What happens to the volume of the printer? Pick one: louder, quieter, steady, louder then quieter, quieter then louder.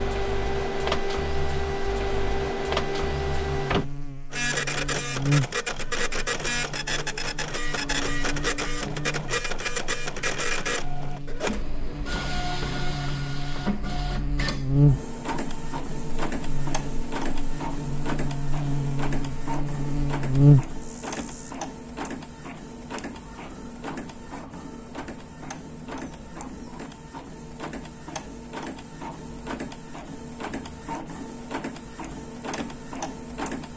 quieter.